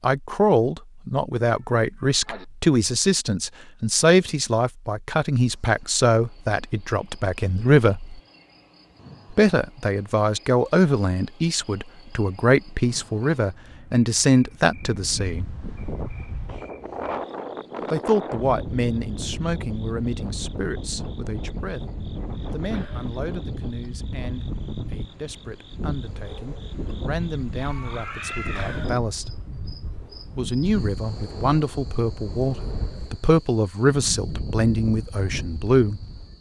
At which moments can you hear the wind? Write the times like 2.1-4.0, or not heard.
14.7-36.3.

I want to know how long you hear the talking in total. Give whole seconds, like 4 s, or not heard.
31 s.